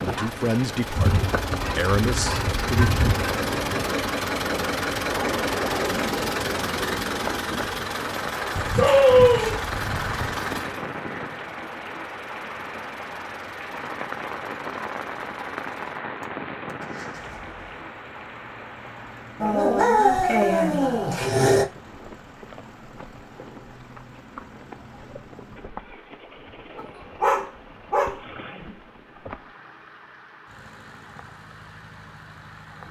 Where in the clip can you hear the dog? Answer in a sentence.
The dog can be heard from 0.9 to 3.9 s, from 8.6 to 10.3 s, from 19.4 to 21.6 s and from 26.8 to 28.1 s.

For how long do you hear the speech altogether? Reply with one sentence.
The speech can be heard for 3 seconds in total.